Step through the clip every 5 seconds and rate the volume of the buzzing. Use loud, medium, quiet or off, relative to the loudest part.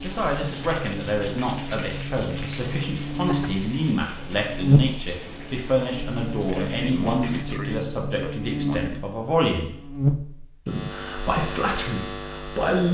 loud, medium, loud.